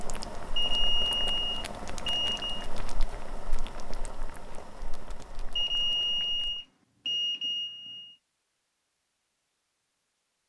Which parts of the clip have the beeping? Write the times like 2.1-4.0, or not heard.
0.6-2.6, 5.5-8.2.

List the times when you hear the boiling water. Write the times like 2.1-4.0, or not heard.
0.0-6.6.